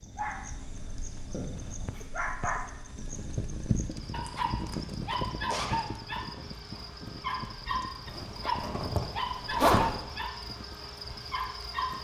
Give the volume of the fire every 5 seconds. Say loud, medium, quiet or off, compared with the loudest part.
loud, loud, quiet.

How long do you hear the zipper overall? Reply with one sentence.
The zipper can be heard for 4 seconds in total.